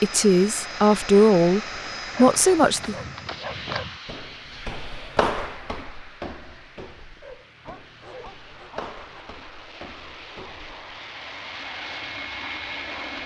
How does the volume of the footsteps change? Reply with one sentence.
The loudness of the footsteps goes up, then down.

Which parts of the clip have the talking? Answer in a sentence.
You can hear the talking from 0.0 to 3.0 s.